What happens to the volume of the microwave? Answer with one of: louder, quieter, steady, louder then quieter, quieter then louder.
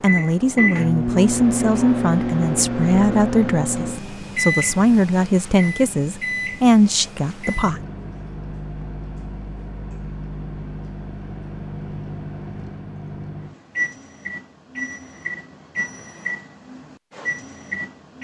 quieter.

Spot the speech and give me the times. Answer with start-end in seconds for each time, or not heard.
0.0-7.8.